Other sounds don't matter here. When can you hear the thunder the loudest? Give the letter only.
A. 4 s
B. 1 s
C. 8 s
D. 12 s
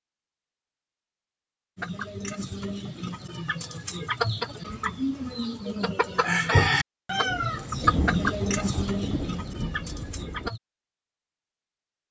C.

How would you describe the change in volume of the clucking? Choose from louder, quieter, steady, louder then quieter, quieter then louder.
louder then quieter.